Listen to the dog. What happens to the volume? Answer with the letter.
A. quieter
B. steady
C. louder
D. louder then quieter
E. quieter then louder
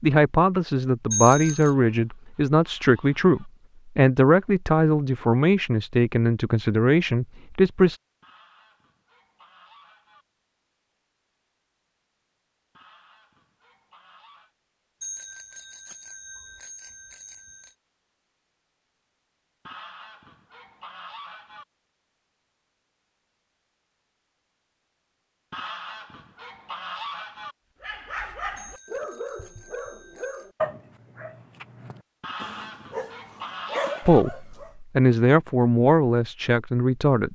E.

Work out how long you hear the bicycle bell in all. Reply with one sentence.
You can hear the bicycle bell for 5 seconds altogether.